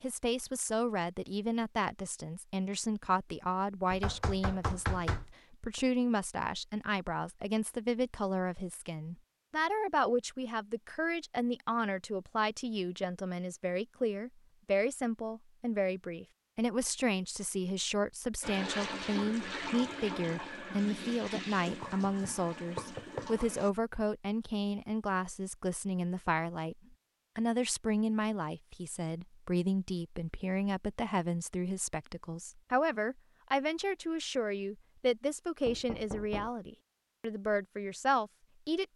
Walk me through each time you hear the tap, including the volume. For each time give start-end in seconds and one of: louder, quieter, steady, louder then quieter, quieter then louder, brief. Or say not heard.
18.4-23.7 quieter.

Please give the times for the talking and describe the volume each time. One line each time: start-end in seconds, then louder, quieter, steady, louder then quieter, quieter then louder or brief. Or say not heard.
0.0-38.9 steady.